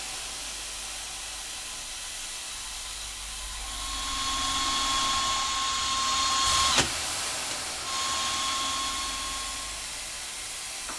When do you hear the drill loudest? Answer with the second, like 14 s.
6 s.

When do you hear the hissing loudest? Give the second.
7 s.